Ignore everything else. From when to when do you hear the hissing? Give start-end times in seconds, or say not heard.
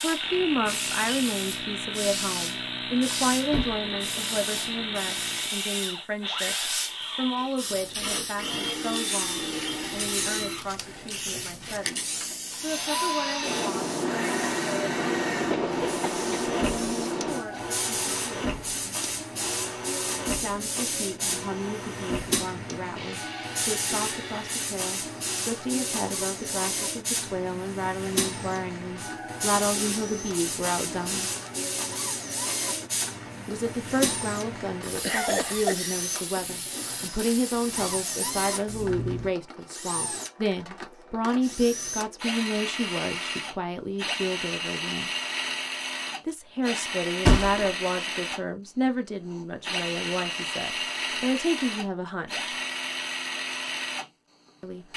0.0-39.4.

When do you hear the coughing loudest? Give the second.
35 s.